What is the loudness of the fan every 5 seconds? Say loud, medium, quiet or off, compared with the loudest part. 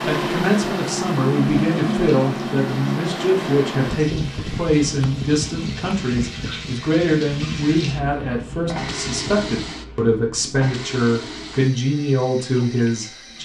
loud, medium, off.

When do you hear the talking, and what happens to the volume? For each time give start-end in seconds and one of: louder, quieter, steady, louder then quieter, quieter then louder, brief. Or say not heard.
0.0-13.4 steady.